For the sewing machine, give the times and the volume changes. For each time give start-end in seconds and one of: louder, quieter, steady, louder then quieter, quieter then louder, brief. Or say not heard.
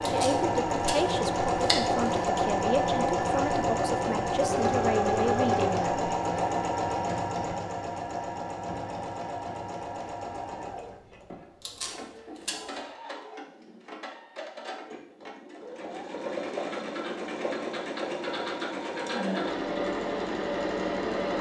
0.0-21.3 quieter then louder.